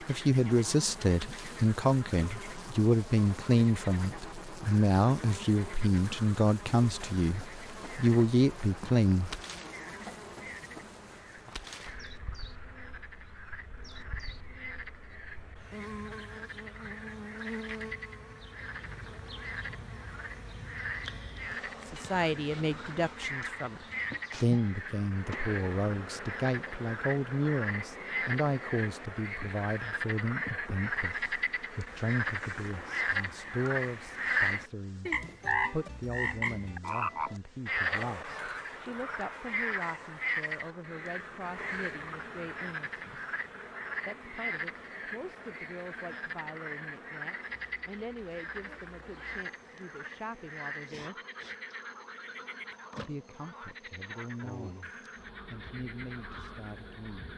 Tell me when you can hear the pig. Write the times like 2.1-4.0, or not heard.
not heard.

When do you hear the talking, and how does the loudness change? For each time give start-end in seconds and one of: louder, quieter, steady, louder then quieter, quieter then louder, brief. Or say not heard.
0.1-9.3 steady
21.9-43.1 quieter
44.0-51.1 steady
53.0-54.9 brief
55.5-57.3 brief.